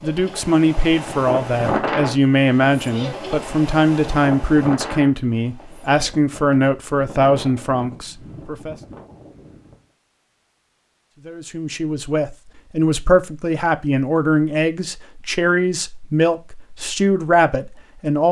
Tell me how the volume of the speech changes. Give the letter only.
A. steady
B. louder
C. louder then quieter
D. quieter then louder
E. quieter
A.